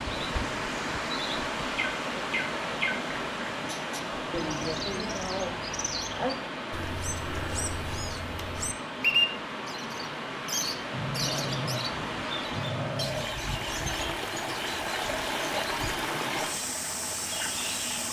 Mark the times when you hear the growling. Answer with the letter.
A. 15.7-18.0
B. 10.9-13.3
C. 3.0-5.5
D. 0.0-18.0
B.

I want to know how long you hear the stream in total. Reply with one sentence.
The stream can be heard for 18 seconds in total.